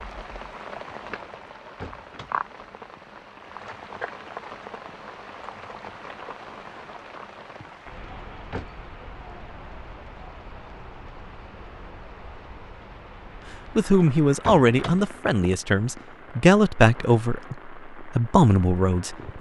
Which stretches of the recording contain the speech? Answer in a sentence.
You can hear the speech from 13.8 to 19.3 s.